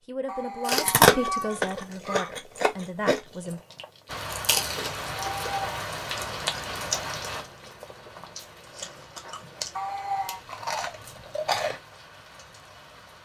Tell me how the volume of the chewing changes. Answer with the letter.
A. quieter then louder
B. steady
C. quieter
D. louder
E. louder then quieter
A.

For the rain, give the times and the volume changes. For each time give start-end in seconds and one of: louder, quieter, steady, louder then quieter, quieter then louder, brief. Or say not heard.
4.0-13.1 quieter.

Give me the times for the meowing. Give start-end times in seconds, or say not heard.
0.2-2.4, 5.2-5.8, 9.8-10.4.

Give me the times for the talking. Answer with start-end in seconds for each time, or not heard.
0.1-3.6.